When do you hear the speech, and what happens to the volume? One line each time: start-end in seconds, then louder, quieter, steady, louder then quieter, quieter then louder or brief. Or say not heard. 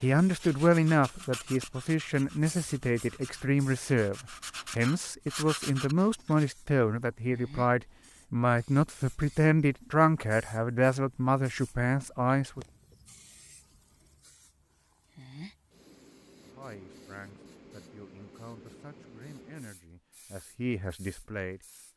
0.0-12.7 steady
16.4-21.6 louder.